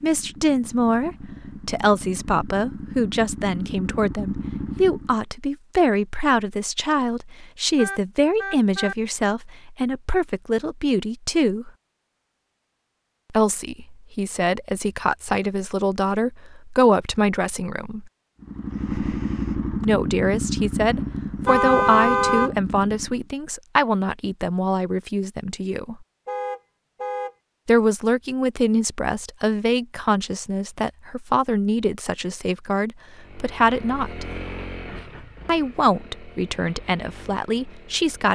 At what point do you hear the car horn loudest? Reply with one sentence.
The loudest moment of the car horn is at 22 seconds.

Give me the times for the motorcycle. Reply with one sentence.
The motorcycle can be heard from 0.0 to 5.2 s, from 18.4 to 23.3 s and from 33.0 to 38.3 s.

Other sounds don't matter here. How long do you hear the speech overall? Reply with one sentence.
The speech can be heard for 32 seconds in total.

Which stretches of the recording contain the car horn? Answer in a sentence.
You can hear the car horn from 7.8 to 8.9 s, from 21.4 to 22.5 s and from 26.2 to 27.3 s.